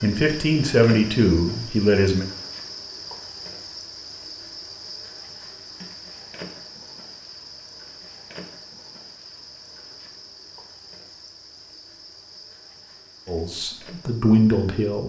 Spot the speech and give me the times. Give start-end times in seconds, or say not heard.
0.0-2.2, 13.2-15.0.